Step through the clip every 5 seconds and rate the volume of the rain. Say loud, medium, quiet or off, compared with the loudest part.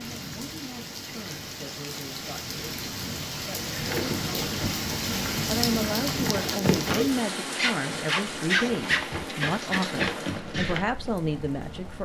loud, loud, medium.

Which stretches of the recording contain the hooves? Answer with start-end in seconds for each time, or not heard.
3.7-10.8.